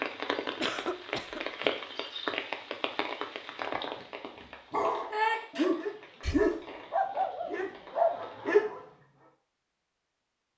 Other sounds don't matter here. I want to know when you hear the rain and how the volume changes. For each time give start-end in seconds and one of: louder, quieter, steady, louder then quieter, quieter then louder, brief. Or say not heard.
0.0-8.6 quieter.